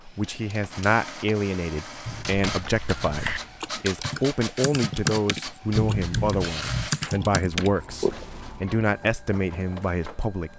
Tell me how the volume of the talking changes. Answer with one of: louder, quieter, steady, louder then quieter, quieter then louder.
steady.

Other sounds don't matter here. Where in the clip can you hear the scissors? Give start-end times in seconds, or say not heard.
2.0-3.5, 5.8-6.9.